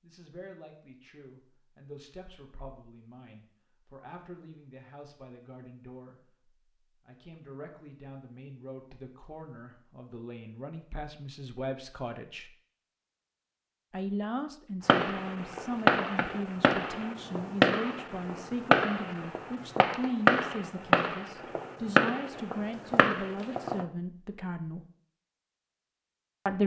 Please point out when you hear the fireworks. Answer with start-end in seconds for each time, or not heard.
14.8-23.9.